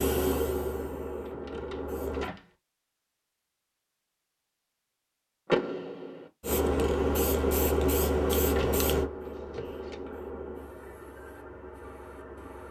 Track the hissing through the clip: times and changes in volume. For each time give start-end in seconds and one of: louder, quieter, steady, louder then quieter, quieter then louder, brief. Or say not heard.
0.0-2.3 brief
6.4-12.6 quieter.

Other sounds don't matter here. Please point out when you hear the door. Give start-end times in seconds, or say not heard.
1.2-2.5, 5.5-6.2, 8.6-10.0.